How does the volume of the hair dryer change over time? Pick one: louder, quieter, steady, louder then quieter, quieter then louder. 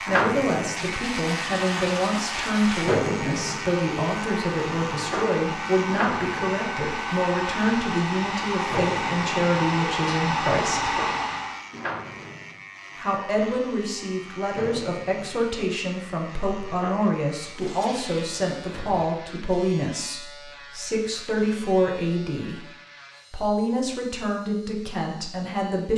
louder.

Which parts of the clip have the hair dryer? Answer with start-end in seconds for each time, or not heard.
0.0-11.7.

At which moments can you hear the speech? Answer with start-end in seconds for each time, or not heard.
0.0-11.0, 12.9-22.6, 23.3-25.9.